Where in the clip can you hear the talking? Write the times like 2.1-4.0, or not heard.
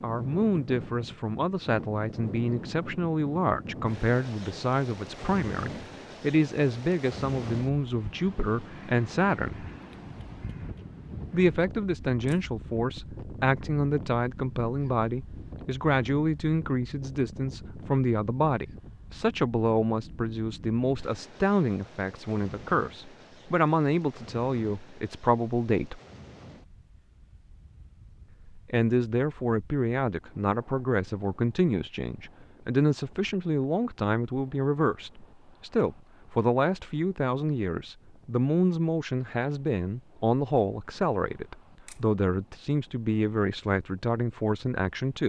0.0-9.7, 11.3-26.0, 28.4-45.2.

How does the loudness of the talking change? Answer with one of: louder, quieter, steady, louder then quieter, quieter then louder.
steady.